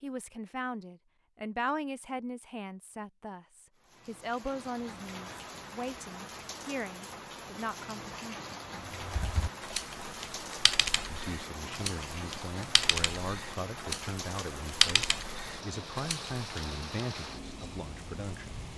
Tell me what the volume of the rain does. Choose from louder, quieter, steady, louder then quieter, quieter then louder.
steady.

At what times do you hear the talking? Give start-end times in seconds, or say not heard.
0.0-8.4, 11.1-18.6.